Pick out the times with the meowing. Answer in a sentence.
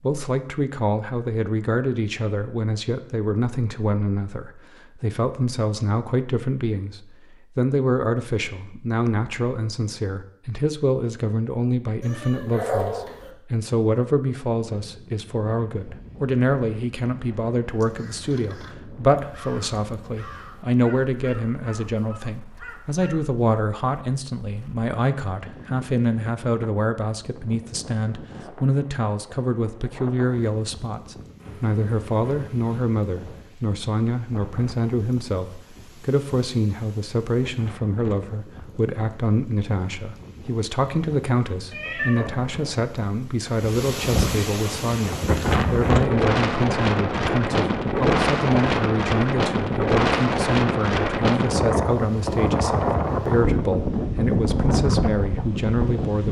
You can hear the meowing from 12.0 to 13.3 s, from 31.4 to 32.8 s and from 41.7 to 42.8 s.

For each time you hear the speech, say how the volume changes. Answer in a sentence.
You can hear the speech from 0.0 to 56.2 s, at a steady volume.